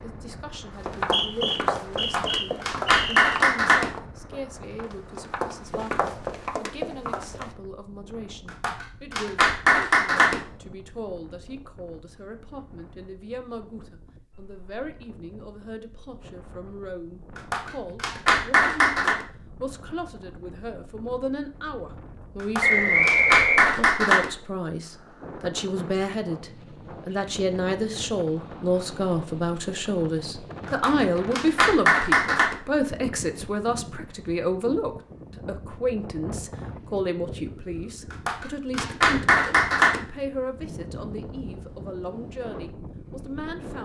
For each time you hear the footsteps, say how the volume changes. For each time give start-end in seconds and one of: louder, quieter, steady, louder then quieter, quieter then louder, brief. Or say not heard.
0.8-7.5 quieter then louder.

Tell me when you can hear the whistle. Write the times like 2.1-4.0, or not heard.
0.9-3.3, 22.6-23.7.